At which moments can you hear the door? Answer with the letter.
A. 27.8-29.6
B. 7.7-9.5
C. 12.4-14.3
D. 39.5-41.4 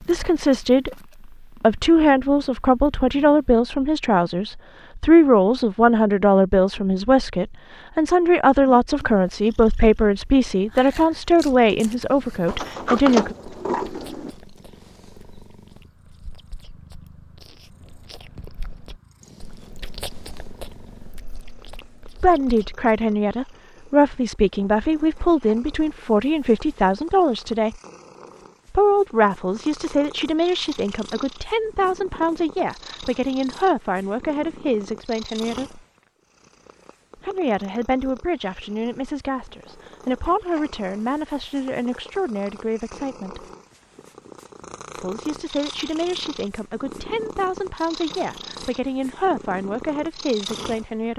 C.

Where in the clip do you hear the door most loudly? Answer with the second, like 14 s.
13 s.